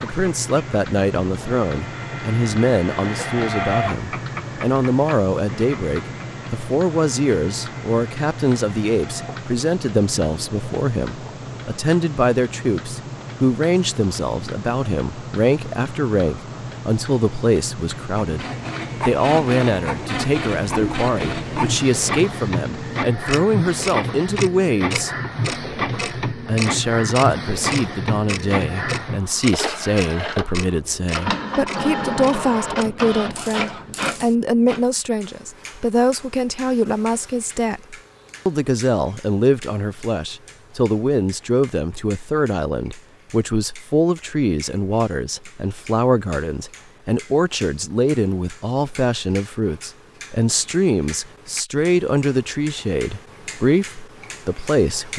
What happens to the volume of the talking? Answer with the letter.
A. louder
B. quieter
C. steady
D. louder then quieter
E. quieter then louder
C.